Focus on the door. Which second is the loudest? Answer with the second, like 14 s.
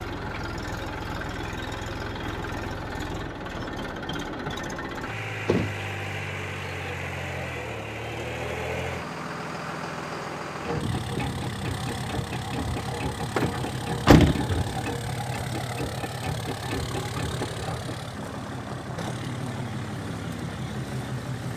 14 s.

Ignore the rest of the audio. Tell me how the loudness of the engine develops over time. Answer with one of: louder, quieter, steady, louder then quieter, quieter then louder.
steady.